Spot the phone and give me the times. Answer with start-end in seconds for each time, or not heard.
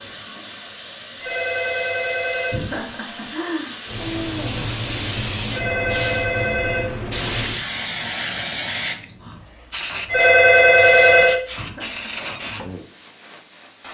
1.2-2.6, 5.5-7.1, 10.1-11.4.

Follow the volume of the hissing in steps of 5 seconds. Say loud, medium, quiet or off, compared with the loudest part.
medium, loud, medium.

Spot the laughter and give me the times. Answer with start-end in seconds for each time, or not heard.
2.5-4.7, 11.6-12.2.